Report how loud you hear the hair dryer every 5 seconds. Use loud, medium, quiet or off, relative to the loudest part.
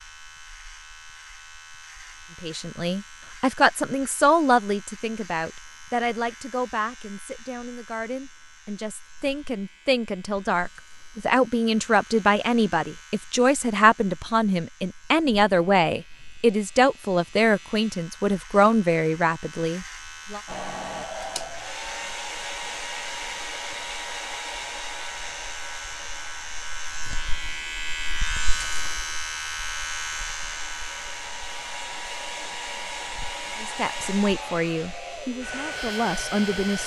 off, off, off, off, loud, medium, loud, loud.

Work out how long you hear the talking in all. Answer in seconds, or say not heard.
21 s.